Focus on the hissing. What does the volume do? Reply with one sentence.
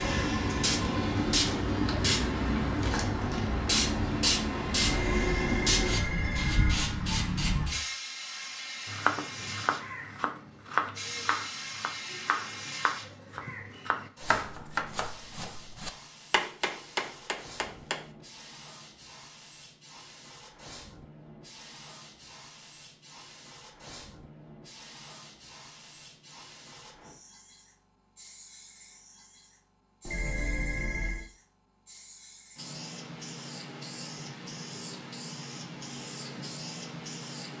The volume of the hissing goes down, then up.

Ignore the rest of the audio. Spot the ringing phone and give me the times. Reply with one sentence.
You can hear the ringing phone from 4.7 to 6.8 s and from 30.0 to 31.2 s.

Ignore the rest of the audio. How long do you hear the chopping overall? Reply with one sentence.
You can hear the chopping for 9 seconds altogether.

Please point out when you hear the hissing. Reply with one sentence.
The hissing can be heard from 0.0 to 37.5 s.